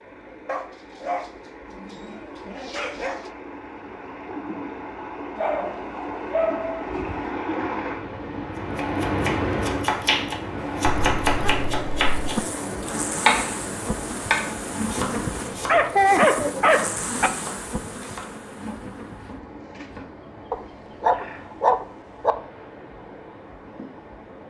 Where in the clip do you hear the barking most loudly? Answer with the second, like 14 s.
16 s.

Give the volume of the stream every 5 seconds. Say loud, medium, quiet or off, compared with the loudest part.
medium, loud, loud, quiet, quiet.